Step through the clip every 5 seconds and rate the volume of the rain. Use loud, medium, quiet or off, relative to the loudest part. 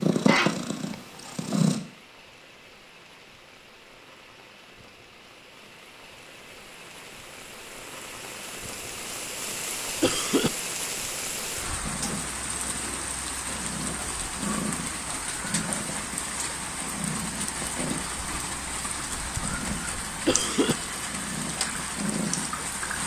quiet, medium, loud, loud, loud.